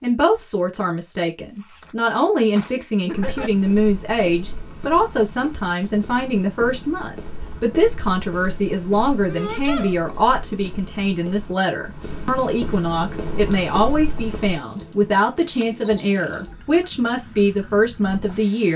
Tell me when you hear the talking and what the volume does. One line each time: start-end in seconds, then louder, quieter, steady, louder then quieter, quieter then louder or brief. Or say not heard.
0.0-18.7 steady.